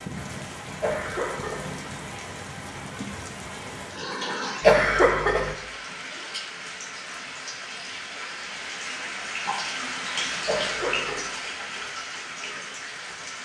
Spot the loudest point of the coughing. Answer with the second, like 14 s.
5 s.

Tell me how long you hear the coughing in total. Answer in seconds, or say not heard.
3 s.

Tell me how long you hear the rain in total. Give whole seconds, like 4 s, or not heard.
13 s.